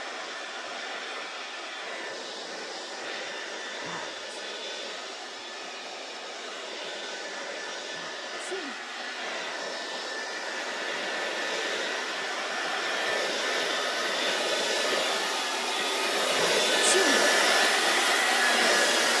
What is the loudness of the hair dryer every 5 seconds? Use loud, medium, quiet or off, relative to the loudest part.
quiet, quiet, medium, loud.